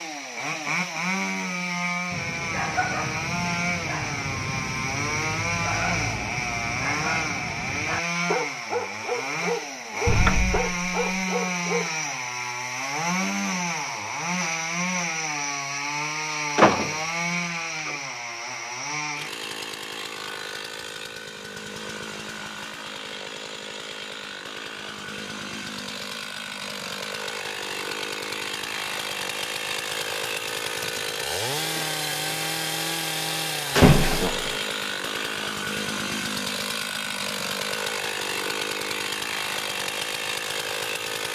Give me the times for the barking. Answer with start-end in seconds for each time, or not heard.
2.1-11.9.